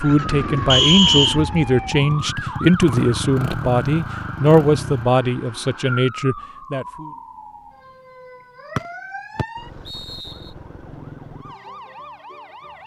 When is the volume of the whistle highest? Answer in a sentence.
The loudest moment of the whistle is at 1 second.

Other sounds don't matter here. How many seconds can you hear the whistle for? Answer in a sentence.
You can hear the whistle for 2 seconds altogether.